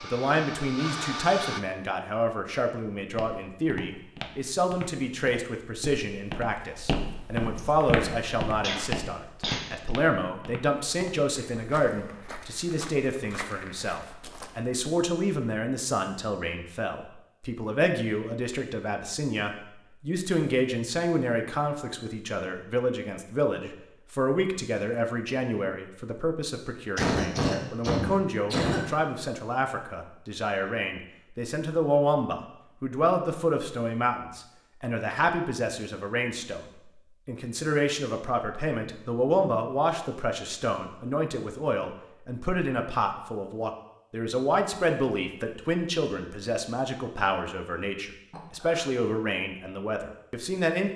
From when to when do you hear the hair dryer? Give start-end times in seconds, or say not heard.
0.0-1.6.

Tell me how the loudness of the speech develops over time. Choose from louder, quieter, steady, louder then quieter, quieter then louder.
steady.